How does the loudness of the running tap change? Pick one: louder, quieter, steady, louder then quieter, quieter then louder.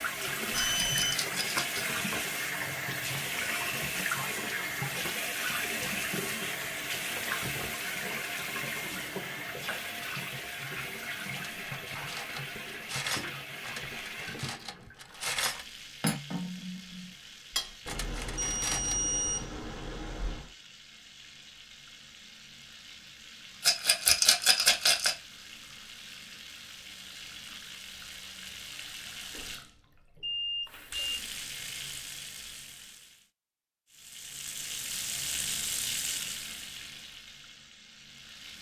quieter then louder.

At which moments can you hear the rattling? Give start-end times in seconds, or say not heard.
0.8-1.8, 23.6-25.1.